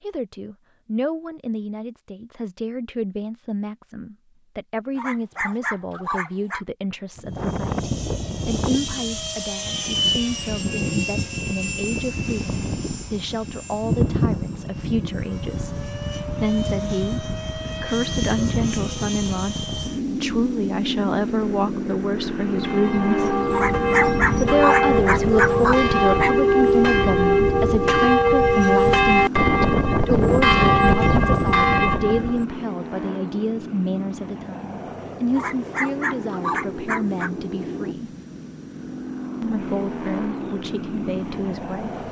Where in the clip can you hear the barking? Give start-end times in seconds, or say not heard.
5.0-6.7, 23.5-26.4, 35.4-37.3.